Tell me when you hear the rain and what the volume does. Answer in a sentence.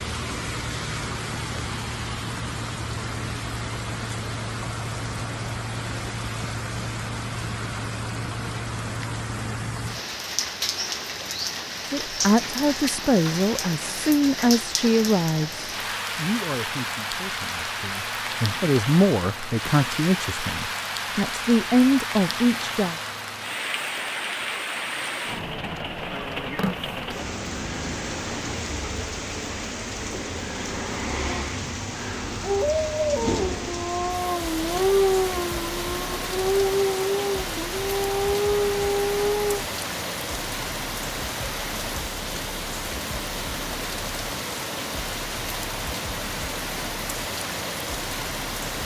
You can hear the rain from 0.0 to 48.8 s, at a steady volume.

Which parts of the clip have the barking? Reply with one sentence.
You can hear the barking from 32.4 to 39.6 s.